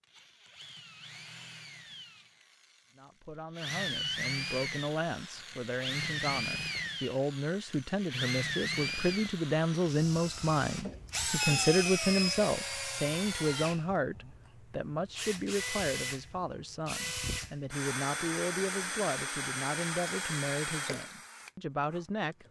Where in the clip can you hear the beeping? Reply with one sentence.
The beeping can be heard from 10.8 to 12.4 s.